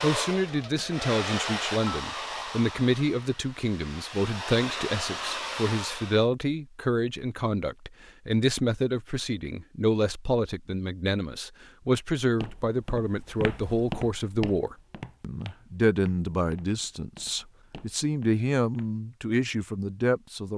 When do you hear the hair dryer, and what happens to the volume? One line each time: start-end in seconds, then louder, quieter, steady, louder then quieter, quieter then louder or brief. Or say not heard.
0.0-6.2 quieter then louder.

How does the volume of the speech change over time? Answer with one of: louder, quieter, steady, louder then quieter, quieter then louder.
steady.